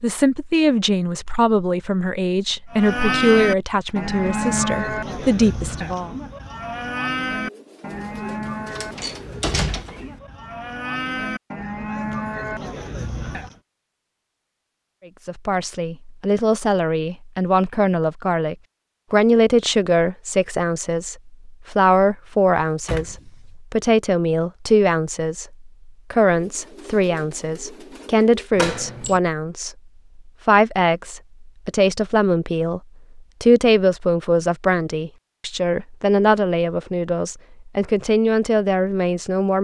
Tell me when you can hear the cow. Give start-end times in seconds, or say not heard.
2.7-13.6.